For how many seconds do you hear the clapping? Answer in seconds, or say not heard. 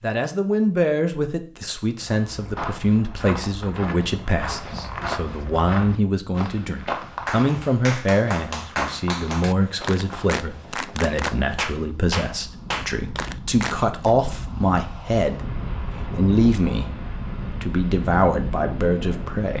7 s.